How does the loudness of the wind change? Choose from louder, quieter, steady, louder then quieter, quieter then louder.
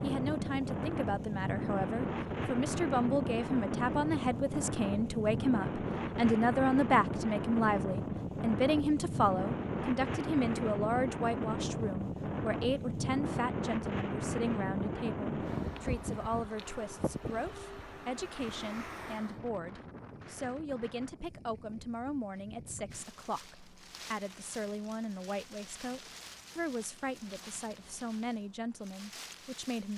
quieter.